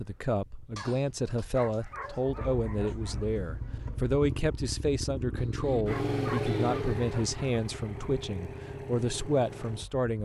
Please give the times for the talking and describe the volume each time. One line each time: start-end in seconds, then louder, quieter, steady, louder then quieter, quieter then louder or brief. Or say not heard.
0.0-10.2 steady.